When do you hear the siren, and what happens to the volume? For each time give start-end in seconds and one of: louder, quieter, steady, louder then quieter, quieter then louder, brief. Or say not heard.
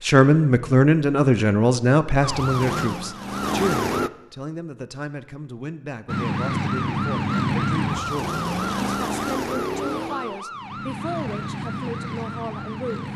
2.2-4.1 brief
6.0-13.1 quieter.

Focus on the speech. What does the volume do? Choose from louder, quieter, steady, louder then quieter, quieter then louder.
quieter.